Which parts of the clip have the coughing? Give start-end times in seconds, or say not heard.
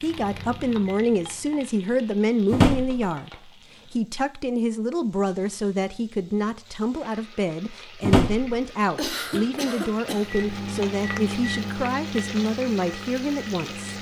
8.9-10.3.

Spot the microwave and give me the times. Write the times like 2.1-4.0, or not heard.
0.0-1.7, 10.1-13.9.